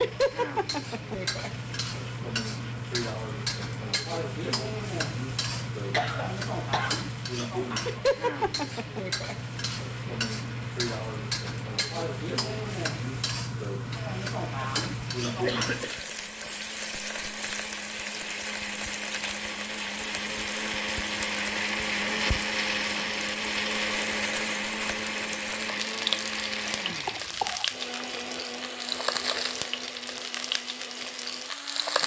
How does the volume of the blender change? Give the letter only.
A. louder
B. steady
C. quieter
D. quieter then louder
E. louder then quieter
E.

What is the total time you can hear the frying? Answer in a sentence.
You can hear the frying for 32 seconds altogether.